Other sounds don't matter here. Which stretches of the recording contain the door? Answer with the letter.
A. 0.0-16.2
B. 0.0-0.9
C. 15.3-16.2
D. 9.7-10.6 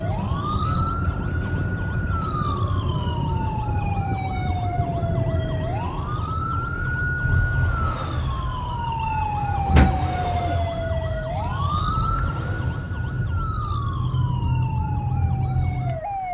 D.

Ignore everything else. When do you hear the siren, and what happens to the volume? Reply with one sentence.
The siren can be heard from 0.0 to 16.2 s, at a steady volume.